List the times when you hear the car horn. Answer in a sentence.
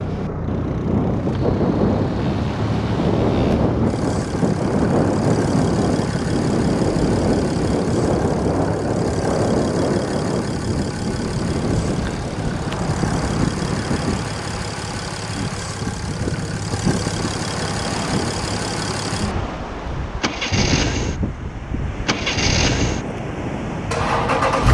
The car horn can't be heard in this clip.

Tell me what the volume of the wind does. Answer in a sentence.
The volume of the wind goes down.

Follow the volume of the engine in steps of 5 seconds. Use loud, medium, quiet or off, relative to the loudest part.
medium, medium, medium, medium, loud.